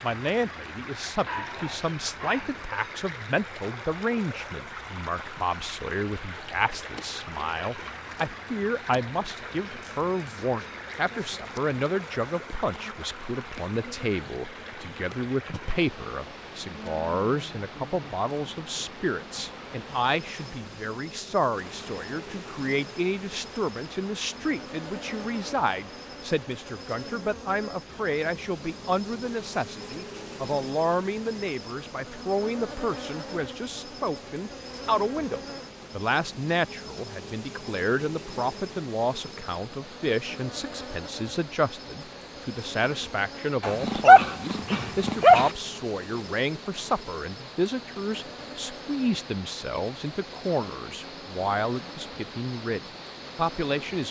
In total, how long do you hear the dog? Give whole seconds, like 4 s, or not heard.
3 s.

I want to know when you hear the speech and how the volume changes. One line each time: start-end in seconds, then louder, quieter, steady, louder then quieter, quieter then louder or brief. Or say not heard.
0.0-54.0 steady.